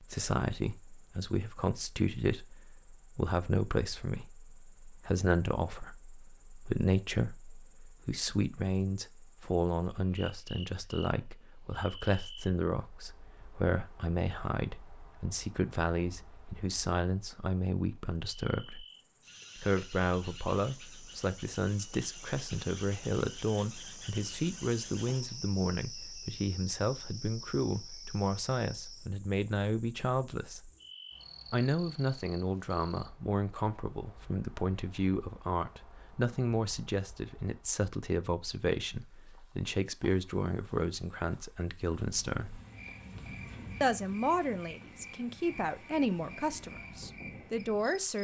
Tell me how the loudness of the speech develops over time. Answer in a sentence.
The volume of the speech stays about the same.